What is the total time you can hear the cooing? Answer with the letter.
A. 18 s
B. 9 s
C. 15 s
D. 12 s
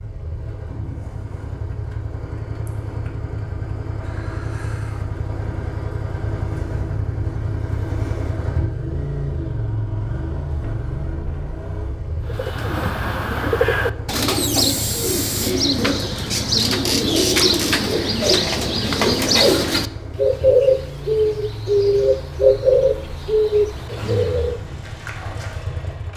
D.